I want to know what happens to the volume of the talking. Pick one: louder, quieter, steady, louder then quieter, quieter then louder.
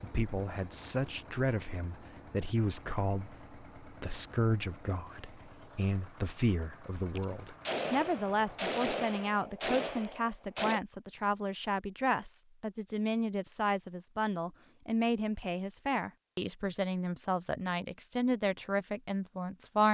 steady.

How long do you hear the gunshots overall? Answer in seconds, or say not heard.
4 s.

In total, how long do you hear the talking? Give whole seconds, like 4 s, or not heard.
20 s.